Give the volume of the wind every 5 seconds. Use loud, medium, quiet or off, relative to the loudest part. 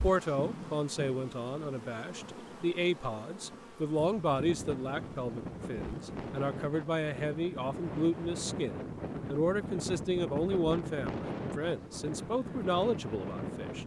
medium, loud, loud.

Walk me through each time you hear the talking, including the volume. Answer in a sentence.
The talking can be heard from 0.0 to 13.8 s, at a steady volume.